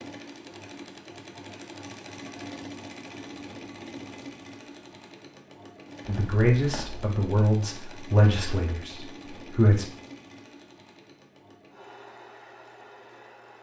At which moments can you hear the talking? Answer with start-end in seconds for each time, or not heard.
6.0-9.9.